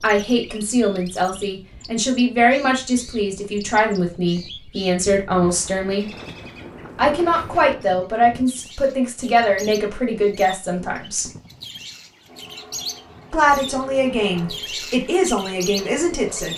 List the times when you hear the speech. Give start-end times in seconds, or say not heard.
0.0-6.0, 7.0-11.3, 13.3-16.5.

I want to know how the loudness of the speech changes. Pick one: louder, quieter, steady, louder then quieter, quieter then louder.
steady.